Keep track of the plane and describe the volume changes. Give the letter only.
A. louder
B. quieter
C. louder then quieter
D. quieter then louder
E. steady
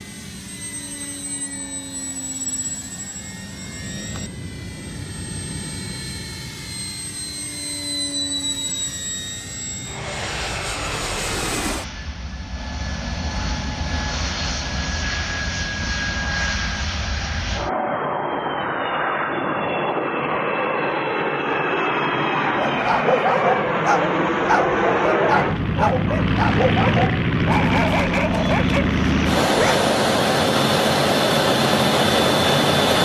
A.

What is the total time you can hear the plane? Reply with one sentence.
You can hear the plane for 33 seconds altogether.